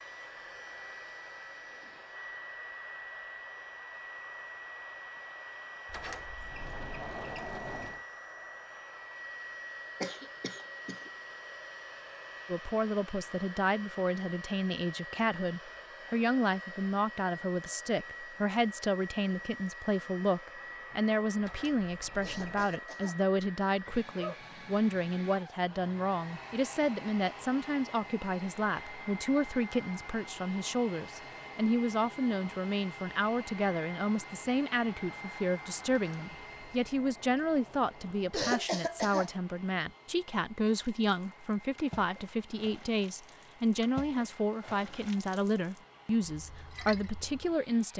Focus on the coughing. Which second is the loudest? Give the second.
39 s.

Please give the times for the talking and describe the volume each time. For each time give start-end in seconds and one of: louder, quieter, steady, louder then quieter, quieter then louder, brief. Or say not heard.
12.4-47.9 steady.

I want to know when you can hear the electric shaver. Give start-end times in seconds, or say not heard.
not heard.